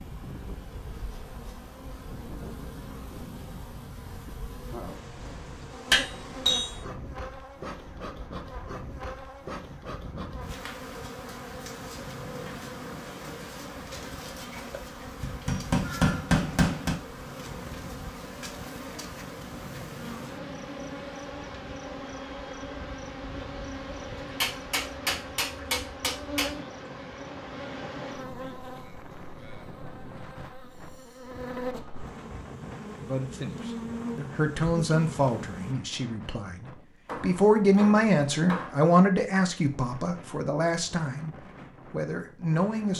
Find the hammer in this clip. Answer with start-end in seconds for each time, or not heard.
5.9-6.8, 15.2-16.9, 24.3-26.5, 37.0-38.7.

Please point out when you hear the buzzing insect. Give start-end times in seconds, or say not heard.
0.0-35.8.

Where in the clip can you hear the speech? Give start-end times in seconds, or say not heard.
33.0-42.9.